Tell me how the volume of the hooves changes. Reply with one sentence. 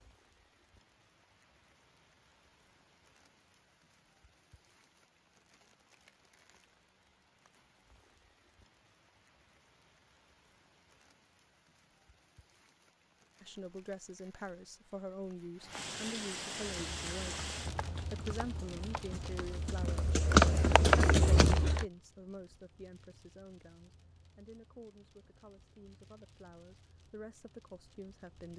The loudness of the hooves goes up.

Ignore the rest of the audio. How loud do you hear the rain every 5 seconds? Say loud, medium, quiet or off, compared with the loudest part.
quiet, quiet, quiet, loud, quiet, quiet.